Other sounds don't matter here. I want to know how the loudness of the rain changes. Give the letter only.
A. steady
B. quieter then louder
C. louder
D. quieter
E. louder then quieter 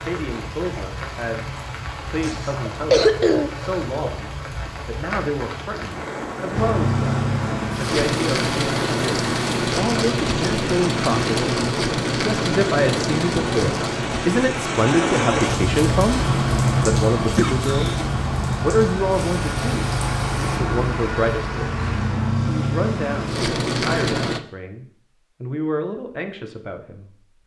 C.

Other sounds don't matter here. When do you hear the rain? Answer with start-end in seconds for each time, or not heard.
0.0-20.6.